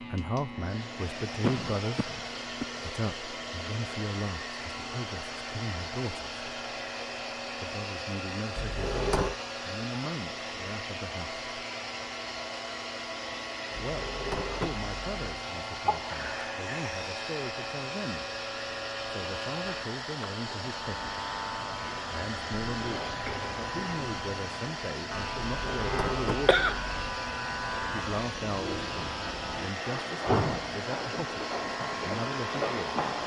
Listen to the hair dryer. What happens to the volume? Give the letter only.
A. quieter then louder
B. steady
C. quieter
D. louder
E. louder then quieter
B.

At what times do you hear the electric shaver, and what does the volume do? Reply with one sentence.
You can hear the electric shaver from 0.0 to 33.2 s, getting louder.